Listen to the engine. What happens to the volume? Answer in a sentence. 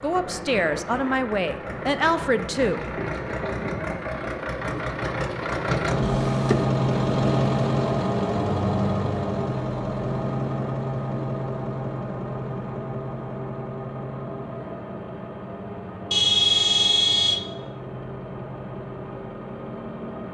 The volume of the engine goes up, then down.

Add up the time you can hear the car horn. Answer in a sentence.
You can hear the car horn for 2 seconds altogether.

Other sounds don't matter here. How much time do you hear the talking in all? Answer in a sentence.
The talking can be heard for 3 seconds in total.